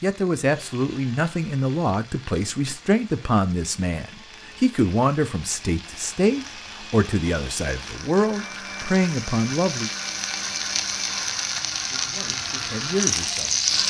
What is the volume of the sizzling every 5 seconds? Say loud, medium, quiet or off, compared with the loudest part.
quiet, quiet, loud.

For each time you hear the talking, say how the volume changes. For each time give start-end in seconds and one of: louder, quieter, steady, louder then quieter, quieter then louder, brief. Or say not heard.
0.0-9.9 steady
11.9-13.6 brief.